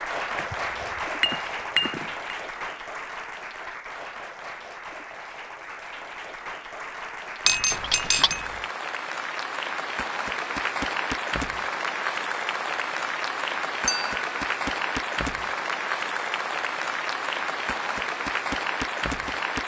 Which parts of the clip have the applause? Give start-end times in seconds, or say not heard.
0.0-19.6.